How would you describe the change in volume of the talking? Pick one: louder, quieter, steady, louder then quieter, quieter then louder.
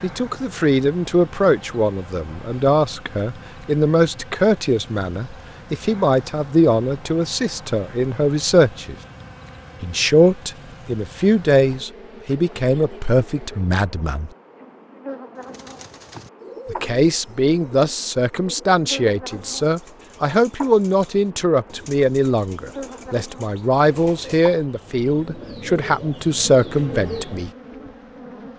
steady.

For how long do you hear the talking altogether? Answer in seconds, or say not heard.
24 s.